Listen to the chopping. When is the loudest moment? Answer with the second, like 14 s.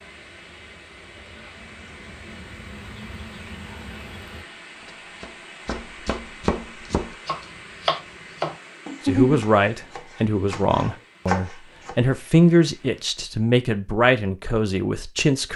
9 s.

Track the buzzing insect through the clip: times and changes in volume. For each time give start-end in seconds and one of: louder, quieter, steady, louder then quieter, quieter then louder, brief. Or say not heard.
0.0-4.5 louder.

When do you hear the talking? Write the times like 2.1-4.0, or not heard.
9.1-15.5.